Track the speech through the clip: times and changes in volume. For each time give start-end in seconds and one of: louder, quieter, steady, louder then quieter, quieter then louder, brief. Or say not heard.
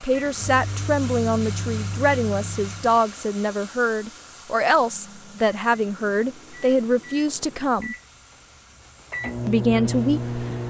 0.0-8.0 steady
9.4-10.4 brief.